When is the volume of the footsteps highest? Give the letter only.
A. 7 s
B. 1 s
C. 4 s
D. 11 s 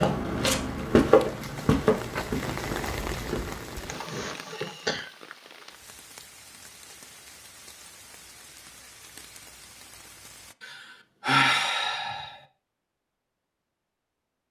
B.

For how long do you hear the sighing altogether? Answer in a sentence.
You can hear the sighing for 3 seconds altogether.